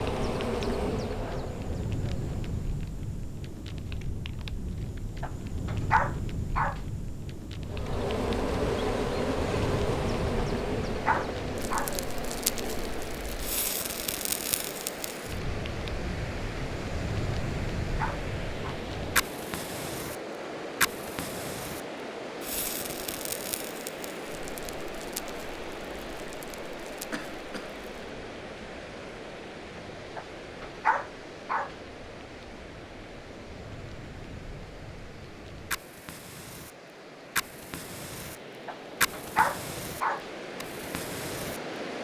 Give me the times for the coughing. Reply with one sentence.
You can hear the coughing from 27.1 to 27.7 s.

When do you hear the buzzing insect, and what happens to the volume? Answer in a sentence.
You can hear the buzzing insect briefly from 0.0 to 2.8 s; and from 7.6 to 13.2 s, getting quieter.